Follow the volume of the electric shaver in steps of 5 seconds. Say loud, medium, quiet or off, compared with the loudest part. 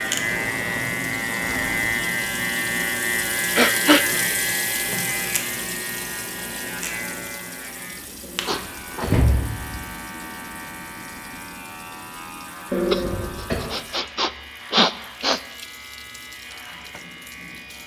loud, medium, quiet, quiet.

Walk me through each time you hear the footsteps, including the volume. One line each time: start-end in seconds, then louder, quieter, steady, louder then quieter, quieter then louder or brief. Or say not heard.
not heard.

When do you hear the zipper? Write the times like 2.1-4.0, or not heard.
not heard.